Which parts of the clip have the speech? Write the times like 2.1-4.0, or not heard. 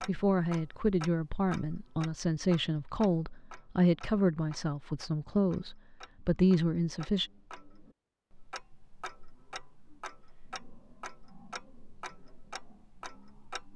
0.1-7.3.